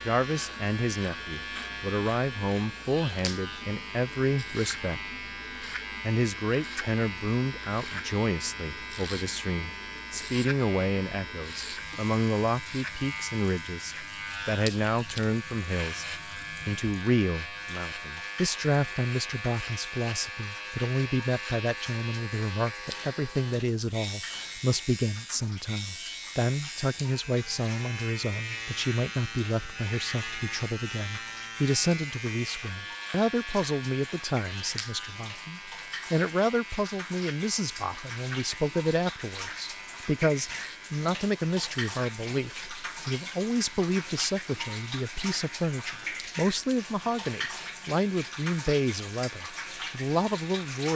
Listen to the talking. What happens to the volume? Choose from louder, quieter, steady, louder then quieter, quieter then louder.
steady.